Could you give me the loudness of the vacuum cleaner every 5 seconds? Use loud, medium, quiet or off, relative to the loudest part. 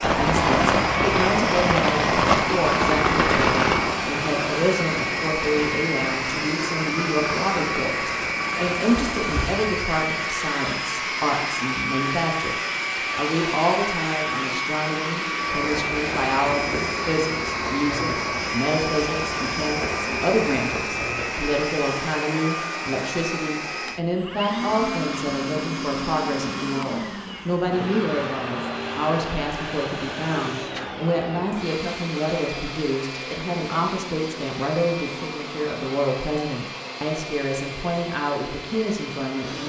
loud, loud, loud, loud, loud, loud, medium, medium.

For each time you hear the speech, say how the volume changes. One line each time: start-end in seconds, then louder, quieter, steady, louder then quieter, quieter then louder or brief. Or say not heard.
0.0-39.6 steady.